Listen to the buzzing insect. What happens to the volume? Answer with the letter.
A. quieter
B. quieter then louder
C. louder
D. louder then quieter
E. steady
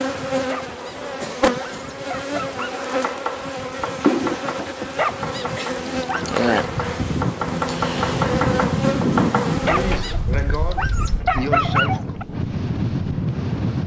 A.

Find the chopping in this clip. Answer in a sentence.
The chopping can be heard from 2.9 to 10.2 s.